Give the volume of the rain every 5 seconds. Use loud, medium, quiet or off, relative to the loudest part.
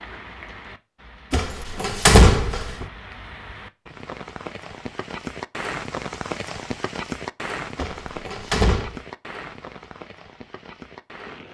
medium, loud, medium.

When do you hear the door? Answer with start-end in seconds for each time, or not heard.
1.3-2.9, 7.8-9.0.